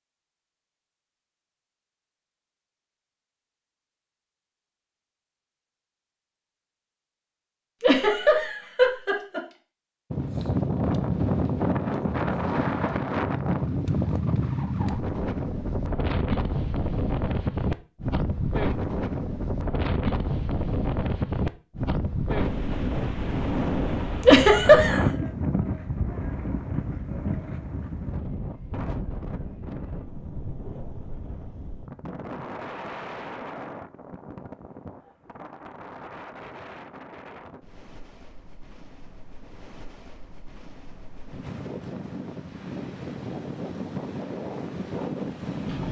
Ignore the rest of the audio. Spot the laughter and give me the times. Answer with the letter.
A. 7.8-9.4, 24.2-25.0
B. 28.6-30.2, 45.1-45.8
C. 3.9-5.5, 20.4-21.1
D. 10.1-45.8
A.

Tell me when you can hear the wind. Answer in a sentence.
You can hear the wind from 10.1 to 45.8 s.